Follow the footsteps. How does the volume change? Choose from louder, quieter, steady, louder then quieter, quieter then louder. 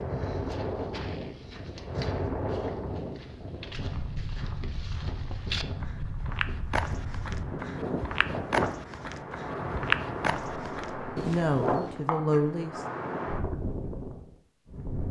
louder.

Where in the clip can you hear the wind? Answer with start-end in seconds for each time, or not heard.
0.0-15.0.